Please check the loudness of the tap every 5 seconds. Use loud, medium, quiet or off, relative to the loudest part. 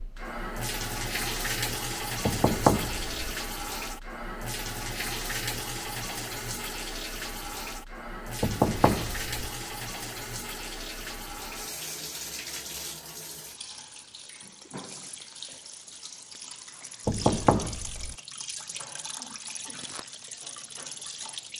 loud, loud, medium, medium, medium.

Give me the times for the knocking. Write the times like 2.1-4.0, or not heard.
2.2-3.4, 8.4-9.3, 17.1-18.1.